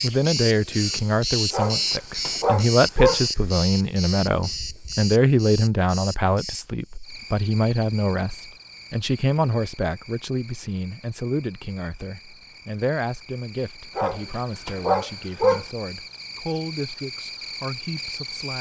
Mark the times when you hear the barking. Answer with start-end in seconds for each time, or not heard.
1.5-3.2, 13.9-15.7.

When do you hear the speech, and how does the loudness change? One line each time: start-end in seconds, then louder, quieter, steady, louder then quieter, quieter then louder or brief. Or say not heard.
0.0-18.5 quieter.